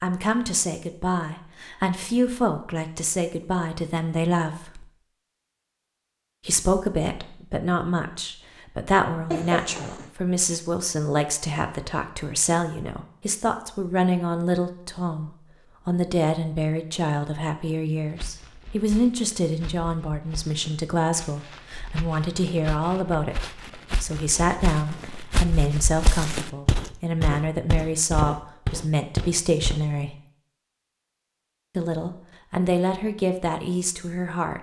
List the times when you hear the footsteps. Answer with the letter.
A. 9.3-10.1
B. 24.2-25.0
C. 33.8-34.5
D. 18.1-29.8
D.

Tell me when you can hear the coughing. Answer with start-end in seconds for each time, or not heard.
9.3-10.1.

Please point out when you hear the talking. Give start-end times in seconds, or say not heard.
0.0-4.8, 6.5-30.1, 31.8-34.5.